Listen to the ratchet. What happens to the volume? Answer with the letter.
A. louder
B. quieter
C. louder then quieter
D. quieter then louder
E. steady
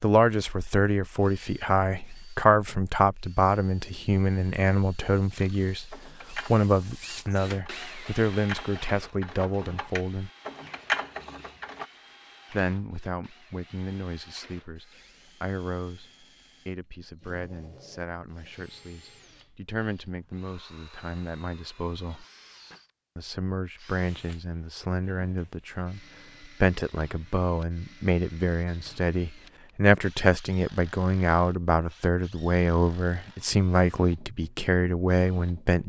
D.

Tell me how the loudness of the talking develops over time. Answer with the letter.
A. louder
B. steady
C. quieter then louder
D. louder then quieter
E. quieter
C.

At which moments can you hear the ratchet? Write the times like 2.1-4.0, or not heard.
5.3-11.8.